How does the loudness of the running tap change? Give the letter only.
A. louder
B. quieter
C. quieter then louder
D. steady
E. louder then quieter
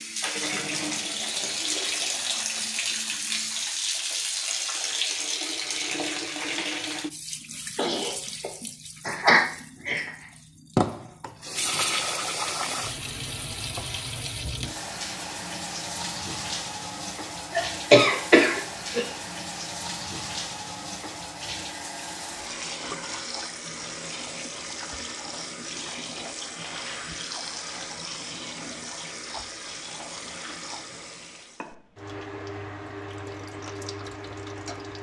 B.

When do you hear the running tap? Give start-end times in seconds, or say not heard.
0.0-34.9.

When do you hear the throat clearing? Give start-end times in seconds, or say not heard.
7.8-10.1, 17.5-19.1.